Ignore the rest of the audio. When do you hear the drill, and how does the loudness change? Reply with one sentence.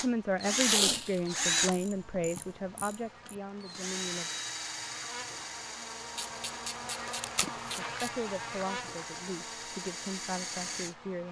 The drill can be heard from 0.0 to 10.9 s, getting quieter then louder.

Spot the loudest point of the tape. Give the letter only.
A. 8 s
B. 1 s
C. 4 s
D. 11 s
B.